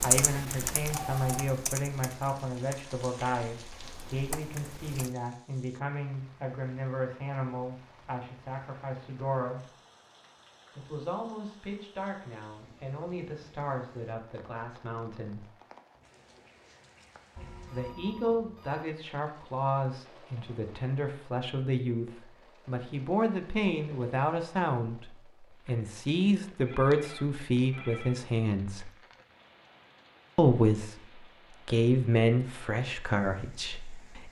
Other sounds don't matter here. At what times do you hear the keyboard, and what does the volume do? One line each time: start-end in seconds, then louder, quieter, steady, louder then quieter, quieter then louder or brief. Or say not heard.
0.0-5.1 quieter then louder.